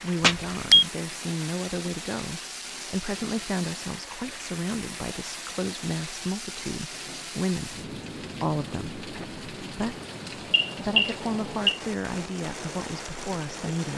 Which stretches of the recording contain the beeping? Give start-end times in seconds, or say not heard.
0.2-0.8, 10.2-11.8.